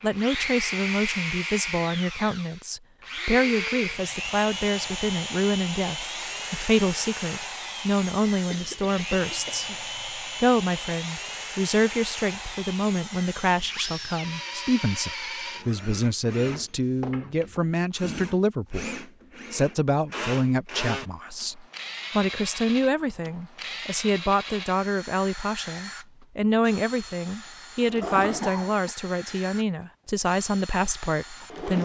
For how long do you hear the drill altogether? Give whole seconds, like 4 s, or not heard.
32 s.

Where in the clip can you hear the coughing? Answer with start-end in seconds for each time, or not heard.
8.5-9.8, 28.0-28.9.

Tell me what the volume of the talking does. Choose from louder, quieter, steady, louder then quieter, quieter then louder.
steady.